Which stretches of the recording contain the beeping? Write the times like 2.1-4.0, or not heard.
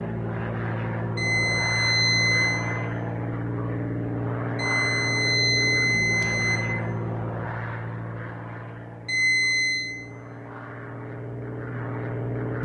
1.1-2.7, 4.5-6.6, 9.1-9.9.